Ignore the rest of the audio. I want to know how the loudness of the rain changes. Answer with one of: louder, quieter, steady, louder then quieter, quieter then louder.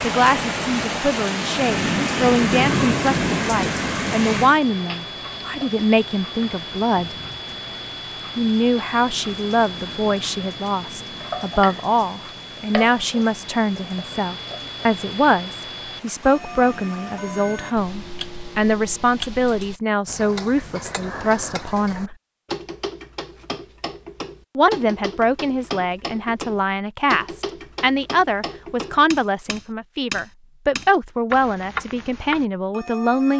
quieter.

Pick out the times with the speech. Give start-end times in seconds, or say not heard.
0.0-7.2, 8.3-22.1, 24.6-33.3.